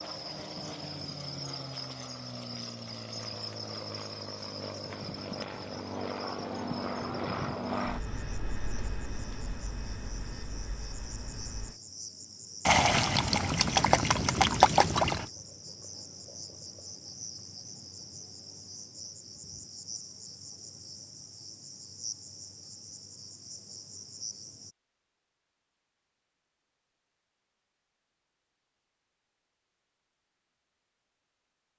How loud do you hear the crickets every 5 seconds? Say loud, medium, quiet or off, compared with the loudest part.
loud, medium, loud, loud, loud, off, off.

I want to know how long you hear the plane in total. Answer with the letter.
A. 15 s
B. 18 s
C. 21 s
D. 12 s
D.